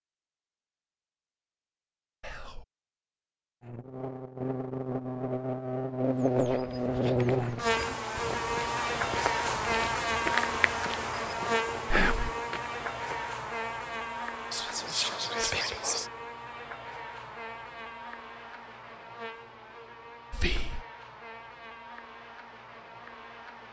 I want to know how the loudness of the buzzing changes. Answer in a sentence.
The loudness of the buzzing goes down.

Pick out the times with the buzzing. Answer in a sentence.
You can hear the buzzing from 3.6 to 23.6 s.